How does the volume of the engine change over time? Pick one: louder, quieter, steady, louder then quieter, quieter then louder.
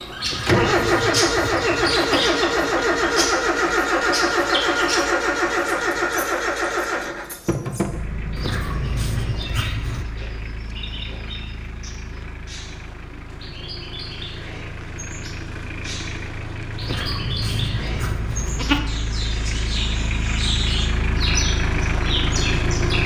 quieter then louder.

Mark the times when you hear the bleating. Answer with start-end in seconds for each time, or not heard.
0.2-2.2, 8.3-10.1, 16.8-18.8.